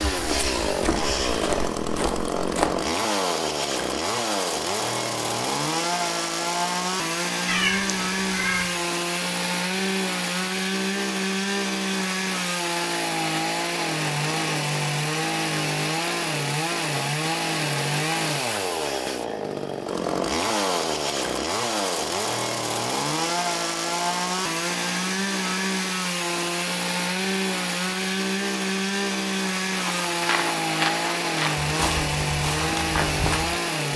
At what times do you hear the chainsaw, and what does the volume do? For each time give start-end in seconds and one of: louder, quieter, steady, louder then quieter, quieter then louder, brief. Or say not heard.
0.0-33.9 steady.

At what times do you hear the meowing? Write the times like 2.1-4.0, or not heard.
7.5-8.8.